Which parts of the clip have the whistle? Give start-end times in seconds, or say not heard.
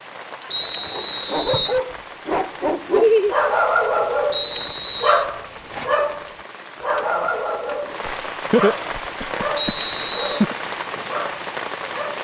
0.5-1.8, 4.3-5.2, 9.6-10.4.